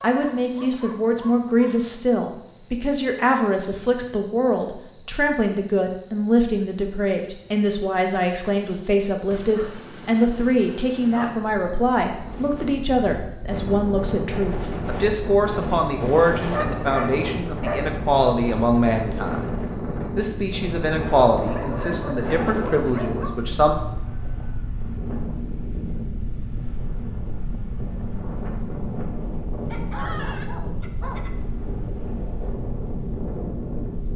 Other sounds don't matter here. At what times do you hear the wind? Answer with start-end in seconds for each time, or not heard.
11.1-34.1.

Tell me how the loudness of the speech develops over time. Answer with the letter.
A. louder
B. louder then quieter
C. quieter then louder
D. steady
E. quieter
D.